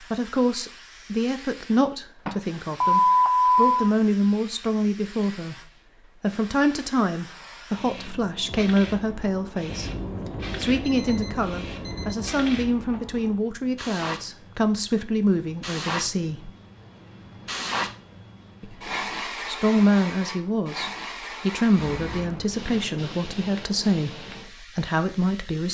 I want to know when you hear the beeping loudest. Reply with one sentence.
The loudest moment of the beeping is at 3 seconds.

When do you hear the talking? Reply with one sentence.
You can hear the talking from 0.0 to 16.5 s and from 18.6 to 25.6 s.